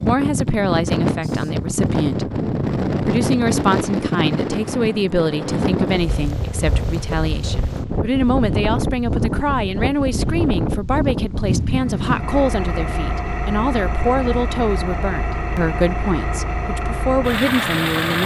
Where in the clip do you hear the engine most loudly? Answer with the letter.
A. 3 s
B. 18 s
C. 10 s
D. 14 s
B.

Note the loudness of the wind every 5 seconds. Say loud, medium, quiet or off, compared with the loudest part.
loud, loud, loud, off.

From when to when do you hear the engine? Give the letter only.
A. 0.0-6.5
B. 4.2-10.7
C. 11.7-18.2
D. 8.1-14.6
C.